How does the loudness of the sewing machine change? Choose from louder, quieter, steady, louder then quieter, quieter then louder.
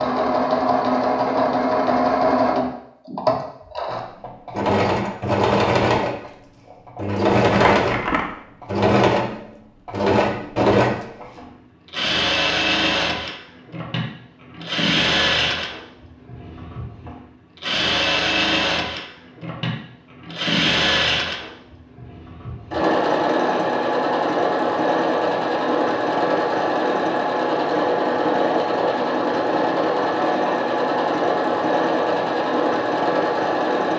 steady.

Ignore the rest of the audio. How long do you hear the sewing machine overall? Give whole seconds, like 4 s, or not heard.
34 s.